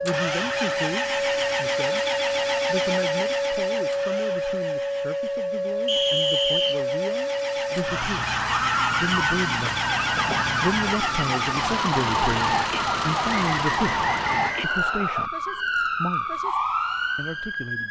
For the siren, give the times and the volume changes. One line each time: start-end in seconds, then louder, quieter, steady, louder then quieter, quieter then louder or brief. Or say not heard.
0.0-17.8 steady.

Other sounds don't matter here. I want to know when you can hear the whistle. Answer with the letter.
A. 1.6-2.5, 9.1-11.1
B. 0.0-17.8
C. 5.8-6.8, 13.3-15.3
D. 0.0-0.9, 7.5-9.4
C.